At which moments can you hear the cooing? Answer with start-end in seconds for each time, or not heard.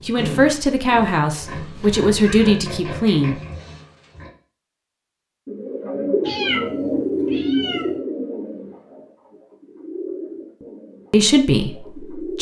5.5-12.3.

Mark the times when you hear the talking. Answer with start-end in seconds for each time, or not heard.
0.0-3.4, 11.1-12.3.